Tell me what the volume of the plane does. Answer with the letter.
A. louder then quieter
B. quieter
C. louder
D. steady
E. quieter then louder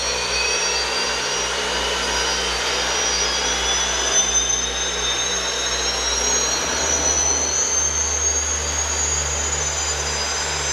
D.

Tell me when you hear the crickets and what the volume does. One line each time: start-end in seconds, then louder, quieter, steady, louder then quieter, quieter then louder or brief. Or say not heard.
not heard.